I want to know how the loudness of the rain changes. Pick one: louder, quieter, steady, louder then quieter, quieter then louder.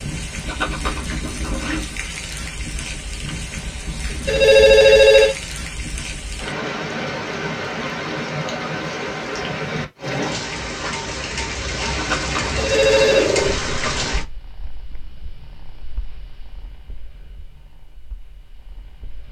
louder.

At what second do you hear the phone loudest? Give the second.
5 s.